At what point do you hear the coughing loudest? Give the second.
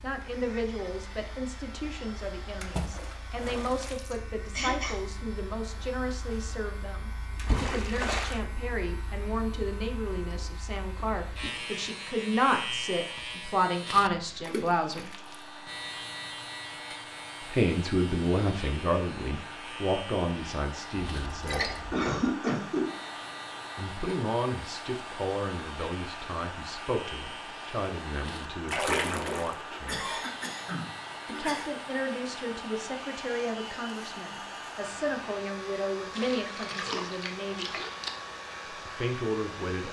22 s.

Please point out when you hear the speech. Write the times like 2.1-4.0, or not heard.
0.0-15.1, 17.5-21.8, 23.8-30.2, 31.2-37.8, 38.7-39.8.